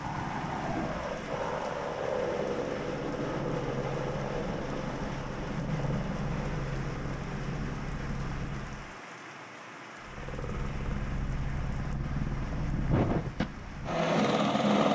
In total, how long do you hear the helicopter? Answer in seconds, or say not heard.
14 s.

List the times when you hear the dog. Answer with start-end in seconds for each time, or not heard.
not heard.